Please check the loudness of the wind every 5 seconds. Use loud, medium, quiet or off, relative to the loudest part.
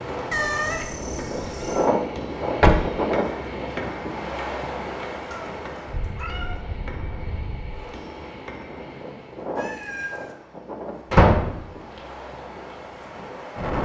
loud, medium, medium.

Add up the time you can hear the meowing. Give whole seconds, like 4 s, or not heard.
4 s.